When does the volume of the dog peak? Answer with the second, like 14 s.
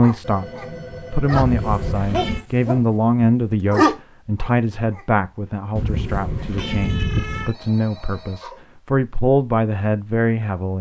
4 s.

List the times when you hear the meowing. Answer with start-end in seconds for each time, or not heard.
1.3-2.5, 5.8-7.5.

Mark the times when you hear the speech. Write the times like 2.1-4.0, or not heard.
0.0-10.7.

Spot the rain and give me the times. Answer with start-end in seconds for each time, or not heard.
not heard.